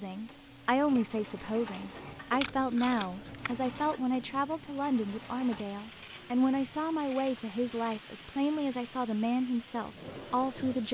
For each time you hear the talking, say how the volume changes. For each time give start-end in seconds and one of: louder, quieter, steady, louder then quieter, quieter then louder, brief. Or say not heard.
0.0-10.8 steady.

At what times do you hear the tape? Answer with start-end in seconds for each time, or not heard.
2.4-3.5.